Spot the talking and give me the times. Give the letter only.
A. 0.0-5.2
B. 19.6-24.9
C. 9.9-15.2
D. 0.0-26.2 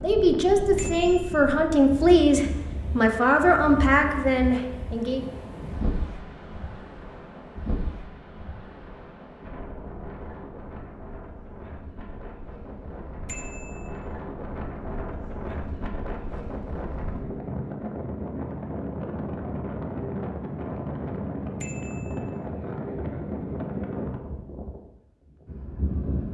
A.